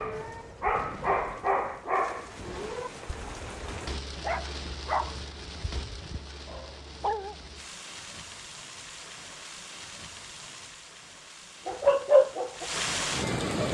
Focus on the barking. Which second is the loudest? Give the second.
12 s.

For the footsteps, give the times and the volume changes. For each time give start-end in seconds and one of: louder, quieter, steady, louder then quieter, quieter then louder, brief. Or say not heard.
not heard.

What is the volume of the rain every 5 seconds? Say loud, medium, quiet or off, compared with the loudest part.
medium, medium, loud.